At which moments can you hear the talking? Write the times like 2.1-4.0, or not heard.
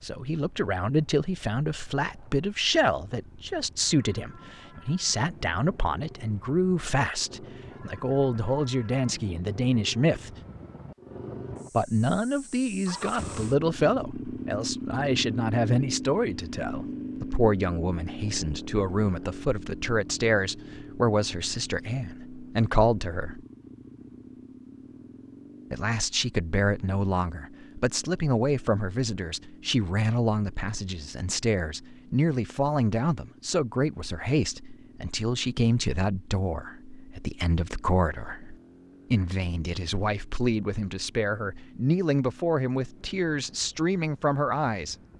0.0-10.3, 11.7-23.4, 25.7-45.0.